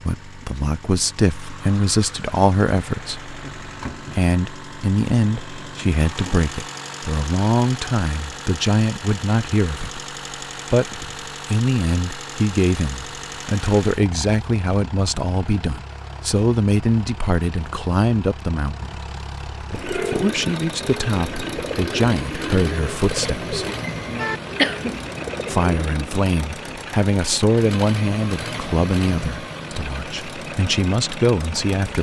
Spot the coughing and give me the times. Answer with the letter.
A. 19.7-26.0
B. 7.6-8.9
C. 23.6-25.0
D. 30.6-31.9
C.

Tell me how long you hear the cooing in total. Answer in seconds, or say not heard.
6 s.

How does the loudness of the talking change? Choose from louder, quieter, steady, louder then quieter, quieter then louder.
steady.